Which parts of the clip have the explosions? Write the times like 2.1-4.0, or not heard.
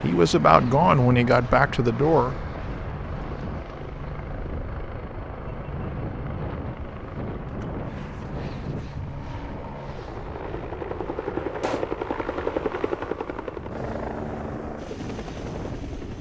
11.6-12.0.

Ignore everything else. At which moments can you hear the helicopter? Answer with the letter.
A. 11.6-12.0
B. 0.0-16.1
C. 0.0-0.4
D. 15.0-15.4
B.